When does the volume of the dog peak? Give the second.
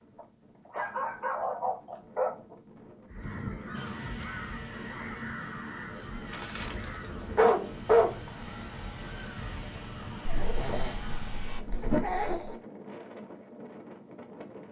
8 s.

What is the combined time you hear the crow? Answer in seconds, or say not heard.
8 s.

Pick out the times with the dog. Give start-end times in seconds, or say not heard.
0.1-2.5, 6.2-8.2, 10.2-12.6.